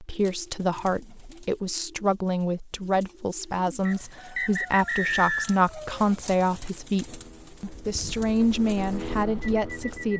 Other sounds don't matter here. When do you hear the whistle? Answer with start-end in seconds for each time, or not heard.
3.9-5.7.